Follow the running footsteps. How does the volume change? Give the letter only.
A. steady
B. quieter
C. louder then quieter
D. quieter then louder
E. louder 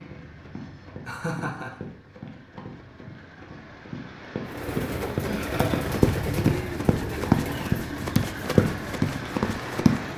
E.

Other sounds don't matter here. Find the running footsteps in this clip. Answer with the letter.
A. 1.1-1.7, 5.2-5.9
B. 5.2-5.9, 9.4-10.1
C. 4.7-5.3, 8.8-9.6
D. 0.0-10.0
D.